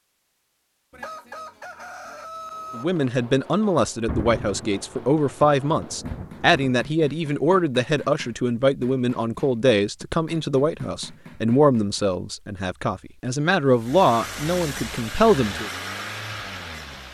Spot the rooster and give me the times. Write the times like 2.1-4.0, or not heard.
0.9-2.9.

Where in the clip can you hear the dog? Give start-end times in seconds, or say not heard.
not heard.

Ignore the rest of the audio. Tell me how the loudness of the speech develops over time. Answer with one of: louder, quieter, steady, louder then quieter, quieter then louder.
steady.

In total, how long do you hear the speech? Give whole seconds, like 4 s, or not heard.
13 s.